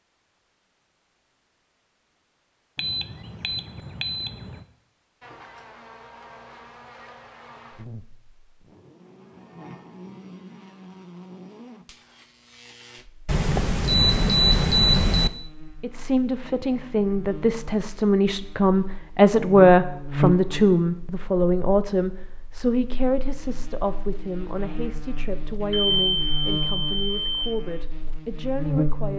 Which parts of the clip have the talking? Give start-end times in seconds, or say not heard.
15.8-29.1.